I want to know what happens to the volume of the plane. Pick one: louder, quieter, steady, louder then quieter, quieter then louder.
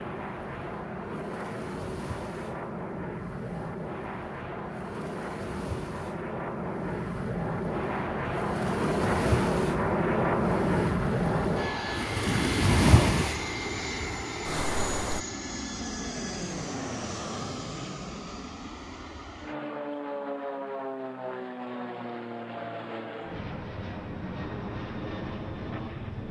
louder then quieter.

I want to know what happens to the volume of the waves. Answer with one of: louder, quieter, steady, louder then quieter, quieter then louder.
louder.